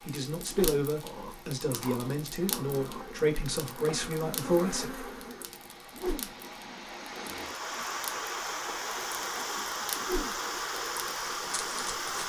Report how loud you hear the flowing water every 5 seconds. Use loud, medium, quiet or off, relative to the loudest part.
quiet, loud, loud.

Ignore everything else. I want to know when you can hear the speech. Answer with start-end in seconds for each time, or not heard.
0.1-5.0.